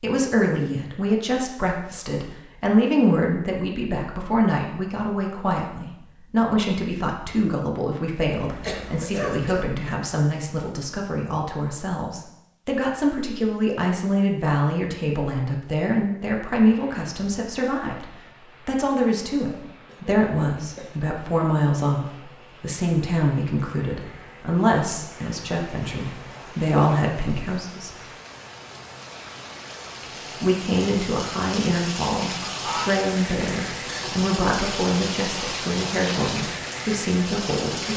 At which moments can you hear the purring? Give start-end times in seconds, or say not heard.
not heard.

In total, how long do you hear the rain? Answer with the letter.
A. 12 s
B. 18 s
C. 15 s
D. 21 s
D.